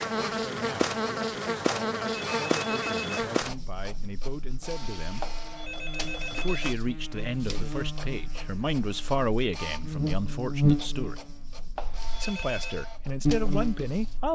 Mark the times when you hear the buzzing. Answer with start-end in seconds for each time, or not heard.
0.0-14.3.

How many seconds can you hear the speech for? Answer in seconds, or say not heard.
12 s.